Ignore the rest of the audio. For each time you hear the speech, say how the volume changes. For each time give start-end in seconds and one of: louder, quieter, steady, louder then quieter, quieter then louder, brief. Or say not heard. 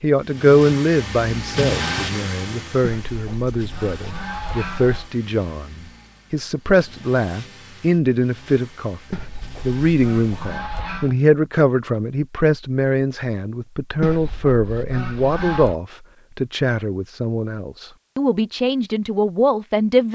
0.0-20.1 steady.